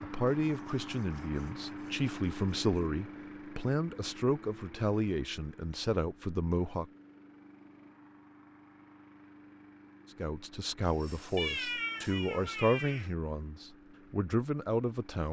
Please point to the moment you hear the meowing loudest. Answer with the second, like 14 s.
12 s.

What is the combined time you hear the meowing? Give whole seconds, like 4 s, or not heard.
2 s.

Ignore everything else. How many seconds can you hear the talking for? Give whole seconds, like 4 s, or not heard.
12 s.